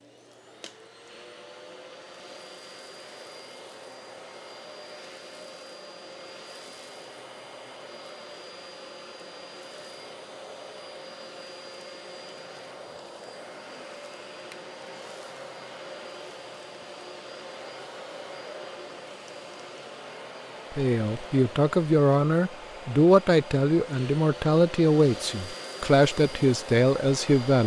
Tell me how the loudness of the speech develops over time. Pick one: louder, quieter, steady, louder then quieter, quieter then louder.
steady.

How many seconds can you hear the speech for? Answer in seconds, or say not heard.
7 s.